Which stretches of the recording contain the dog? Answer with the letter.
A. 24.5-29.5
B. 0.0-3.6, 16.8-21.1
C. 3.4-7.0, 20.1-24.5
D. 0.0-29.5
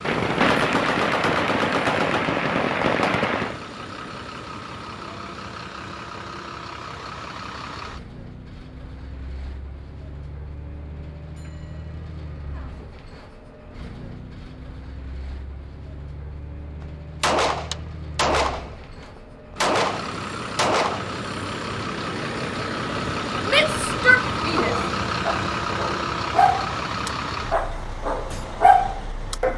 A.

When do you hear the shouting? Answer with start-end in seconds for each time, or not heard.
23.4-24.8.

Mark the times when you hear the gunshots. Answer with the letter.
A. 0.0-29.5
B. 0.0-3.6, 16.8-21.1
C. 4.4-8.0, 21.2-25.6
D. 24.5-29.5
B.